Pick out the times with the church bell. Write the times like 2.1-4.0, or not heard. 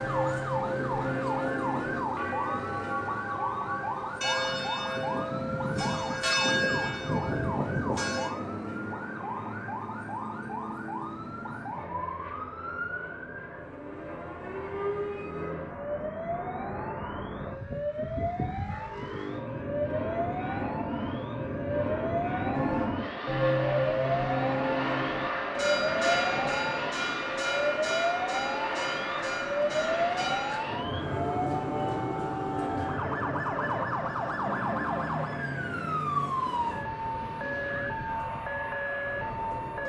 0.0-8.3, 22.5-30.6.